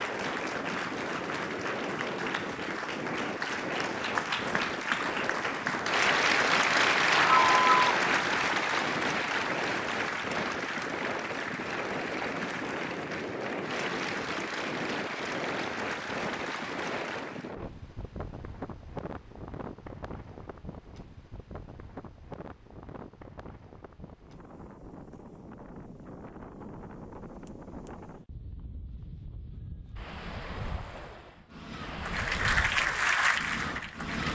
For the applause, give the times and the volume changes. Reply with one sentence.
You can hear the applause from 0.0 to 17.6 s, getting louder then quieter; and briefly from 32.0 to 34.2 s.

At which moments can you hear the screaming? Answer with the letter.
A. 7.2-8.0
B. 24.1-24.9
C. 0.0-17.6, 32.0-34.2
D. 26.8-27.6
A.